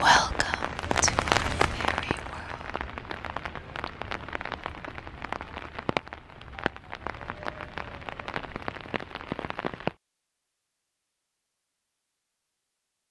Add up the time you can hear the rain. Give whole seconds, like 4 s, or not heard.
10 s.